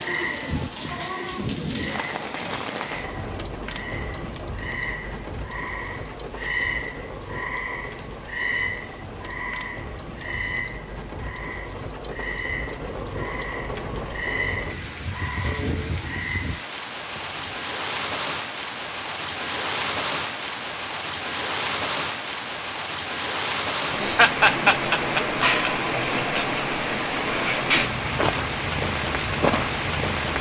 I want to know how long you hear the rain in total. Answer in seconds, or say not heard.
30 s.